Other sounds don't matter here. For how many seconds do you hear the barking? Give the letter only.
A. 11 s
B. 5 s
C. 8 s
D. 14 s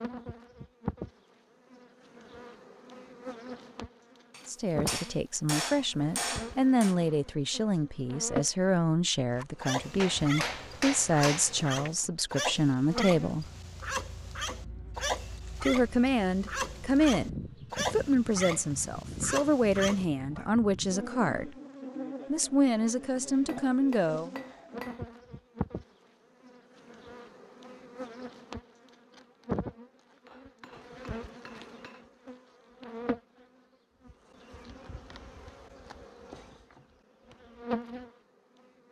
A.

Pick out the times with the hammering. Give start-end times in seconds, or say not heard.
4.3-7.0, 9.9-11.9, 23.4-25.0, 30.2-32.0.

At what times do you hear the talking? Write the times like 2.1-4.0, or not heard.
4.5-13.4, 15.6-21.6, 22.2-24.3.